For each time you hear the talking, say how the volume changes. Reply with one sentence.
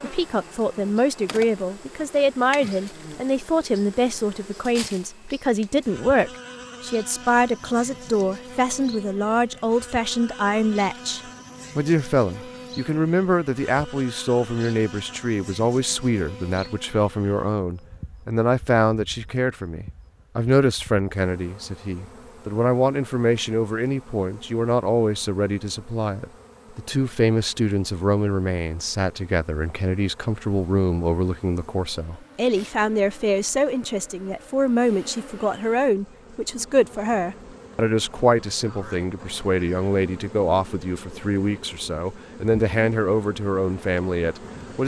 You can hear the talking from 0.0 to 44.8 s, at a steady volume.